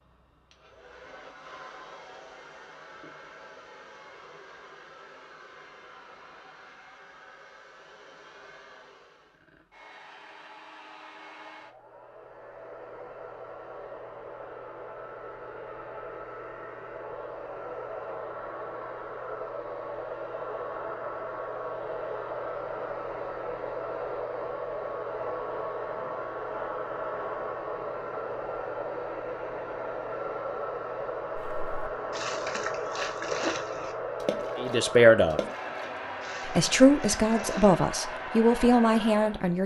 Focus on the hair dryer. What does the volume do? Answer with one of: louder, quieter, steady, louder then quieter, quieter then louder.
louder.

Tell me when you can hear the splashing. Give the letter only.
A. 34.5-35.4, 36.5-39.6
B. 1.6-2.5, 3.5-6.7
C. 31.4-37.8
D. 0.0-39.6
C.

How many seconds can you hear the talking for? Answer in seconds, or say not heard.
4 s.